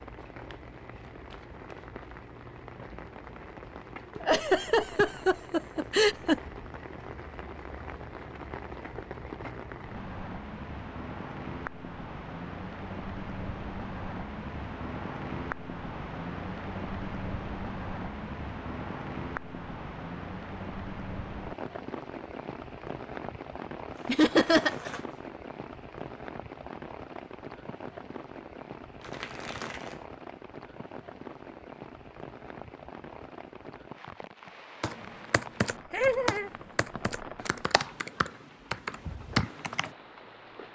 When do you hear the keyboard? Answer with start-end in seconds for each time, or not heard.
34.8-39.9.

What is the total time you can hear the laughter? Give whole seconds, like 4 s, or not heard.
4 s.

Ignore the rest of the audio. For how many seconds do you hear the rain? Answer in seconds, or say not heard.
41 s.